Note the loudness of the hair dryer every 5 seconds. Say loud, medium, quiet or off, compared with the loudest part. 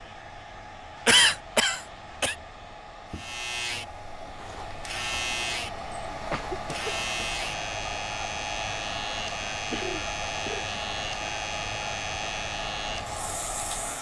medium, loud, loud.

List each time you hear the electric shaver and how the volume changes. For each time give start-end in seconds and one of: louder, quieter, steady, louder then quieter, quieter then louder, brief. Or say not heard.
3.1-13.9 steady.